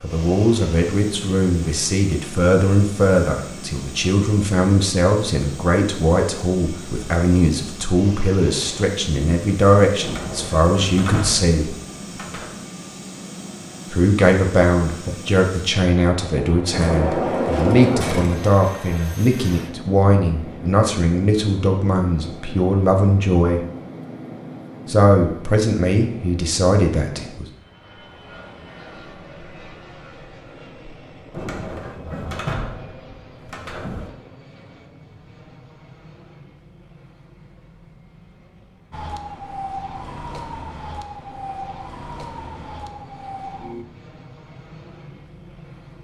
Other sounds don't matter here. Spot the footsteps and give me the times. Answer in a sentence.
You can't hear the footsteps here.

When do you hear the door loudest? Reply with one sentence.
The volume of the door peaks at 18 seconds.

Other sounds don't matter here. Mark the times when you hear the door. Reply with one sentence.
You can hear the door from 10.0 to 12.6 s, from 16.7 to 18.4 s and from 31.3 to 34.1 s.